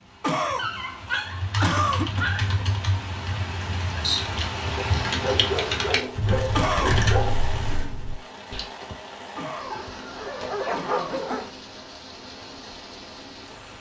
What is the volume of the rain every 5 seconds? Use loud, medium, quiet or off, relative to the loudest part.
loud, loud, medium.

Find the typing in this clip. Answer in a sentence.
The typing can be heard from 1.2 to 8.7 s.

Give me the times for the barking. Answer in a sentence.
You can hear the barking from 0.6 to 2.5 s, from 4.8 to 7.3 s and from 9.7 to 11.5 s.